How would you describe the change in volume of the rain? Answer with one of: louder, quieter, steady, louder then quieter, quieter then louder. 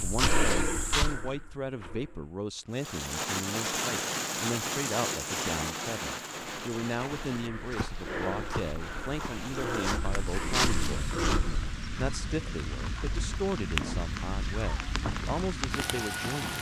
quieter then louder.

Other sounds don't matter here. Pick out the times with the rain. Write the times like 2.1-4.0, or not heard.
2.7-16.5.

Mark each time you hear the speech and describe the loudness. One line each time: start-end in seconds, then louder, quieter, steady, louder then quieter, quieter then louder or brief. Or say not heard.
0.0-16.5 steady.